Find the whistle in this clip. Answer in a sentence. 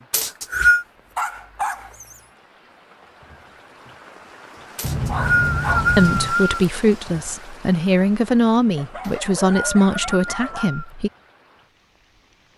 You can hear the whistle from 0.1 to 0.8 s, from 4.8 to 6.7 s and from 9.0 to 10.9 s.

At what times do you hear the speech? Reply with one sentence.
You can hear the speech from 6.0 to 11.1 s.